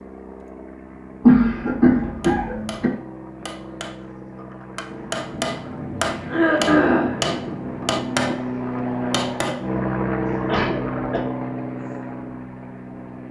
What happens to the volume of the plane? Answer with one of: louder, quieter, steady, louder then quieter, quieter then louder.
louder.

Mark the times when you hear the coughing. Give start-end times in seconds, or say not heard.
1.2-2.9, 6.2-7.2, 10.4-11.2.